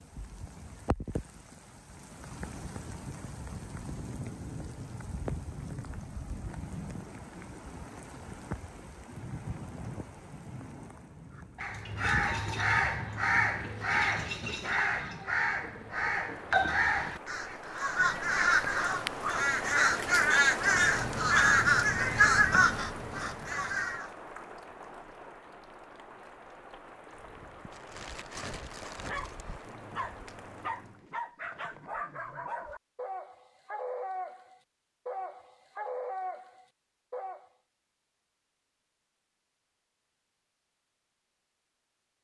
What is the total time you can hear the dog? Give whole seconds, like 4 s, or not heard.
10 s.